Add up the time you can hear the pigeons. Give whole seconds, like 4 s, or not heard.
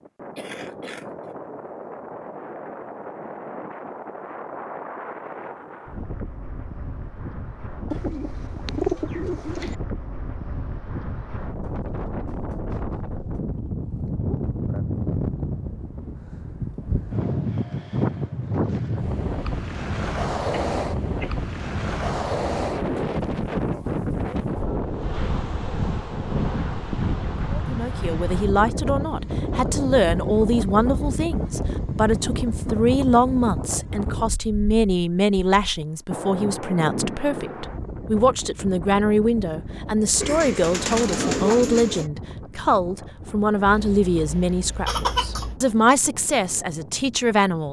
4 s.